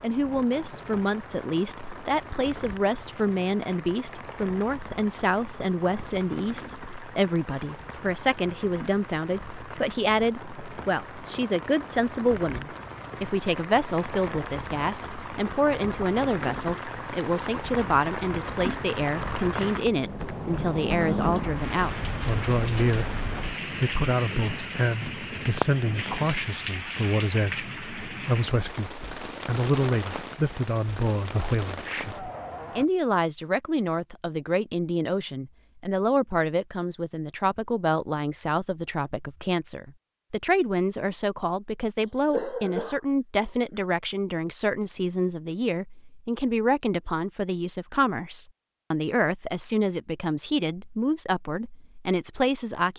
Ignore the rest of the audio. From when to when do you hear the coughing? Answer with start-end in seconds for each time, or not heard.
42.2-43.6.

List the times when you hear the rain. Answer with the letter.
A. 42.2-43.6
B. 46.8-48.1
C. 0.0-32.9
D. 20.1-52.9
C.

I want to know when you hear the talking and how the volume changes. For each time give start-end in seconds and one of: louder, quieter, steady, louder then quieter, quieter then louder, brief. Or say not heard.
0.0-52.9 steady.